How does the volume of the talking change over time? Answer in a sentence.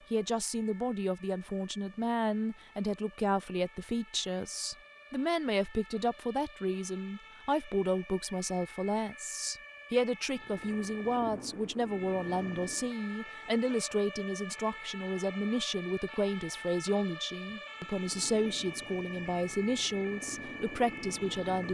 The volume of the talking stays about the same.